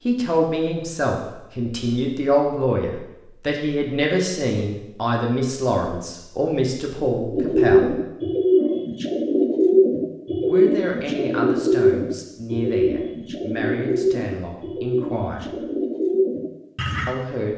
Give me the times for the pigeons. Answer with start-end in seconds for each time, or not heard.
7.3-17.1.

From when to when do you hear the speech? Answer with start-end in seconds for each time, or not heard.
0.1-8.0, 10.4-15.6, 17.1-17.5.